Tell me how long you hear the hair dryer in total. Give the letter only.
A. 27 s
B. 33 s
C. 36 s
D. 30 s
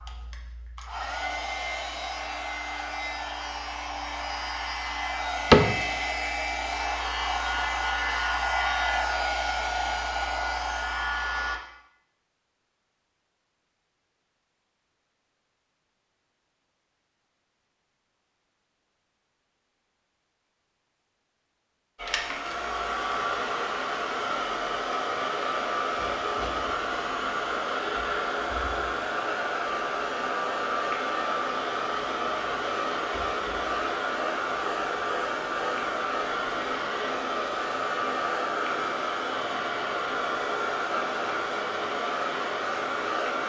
B.